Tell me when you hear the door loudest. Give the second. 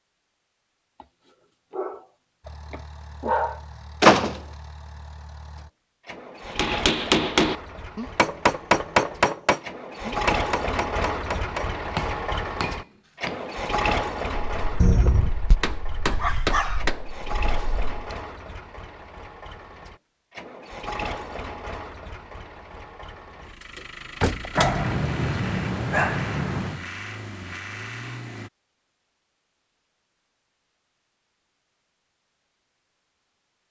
4 s.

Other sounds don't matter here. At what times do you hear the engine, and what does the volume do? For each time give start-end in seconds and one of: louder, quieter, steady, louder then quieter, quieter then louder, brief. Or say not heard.
2.4-28.5 louder then quieter.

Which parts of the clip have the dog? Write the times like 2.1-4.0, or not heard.
1.0-3.6, 16.1-16.9, 24.6-26.8.